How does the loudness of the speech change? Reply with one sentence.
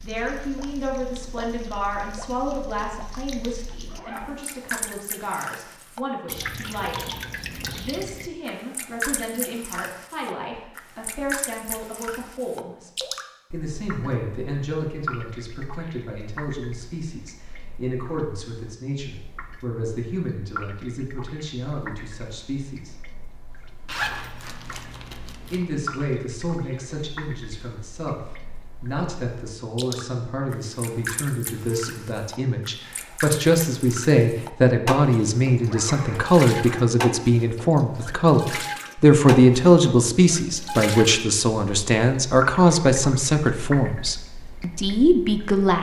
The loudness of the speech goes up.